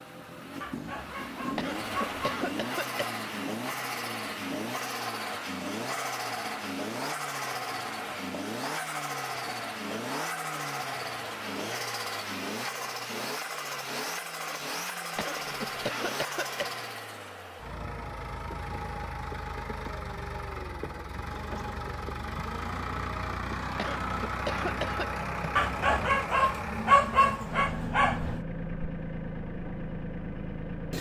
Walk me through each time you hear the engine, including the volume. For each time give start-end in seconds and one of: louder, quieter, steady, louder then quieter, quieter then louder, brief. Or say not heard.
0.0-30.9 steady.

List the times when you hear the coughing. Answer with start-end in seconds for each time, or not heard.
1.6-3.1, 15.2-16.7, 23.8-25.2.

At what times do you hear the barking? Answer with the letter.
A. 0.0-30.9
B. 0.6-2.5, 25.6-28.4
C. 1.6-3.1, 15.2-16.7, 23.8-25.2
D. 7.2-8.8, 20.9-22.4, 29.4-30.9
B.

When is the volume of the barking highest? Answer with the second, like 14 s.
27 s.